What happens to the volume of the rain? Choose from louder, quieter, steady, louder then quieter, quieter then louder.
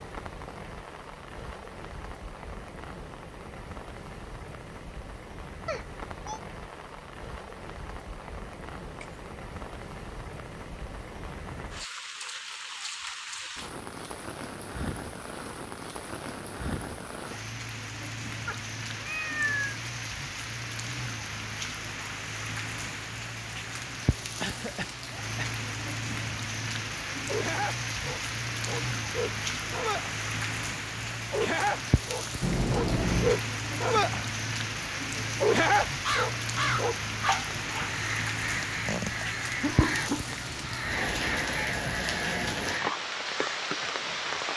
louder.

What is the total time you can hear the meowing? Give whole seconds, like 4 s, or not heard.
3 s.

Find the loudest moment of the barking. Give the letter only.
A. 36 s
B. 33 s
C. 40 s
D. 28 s
A.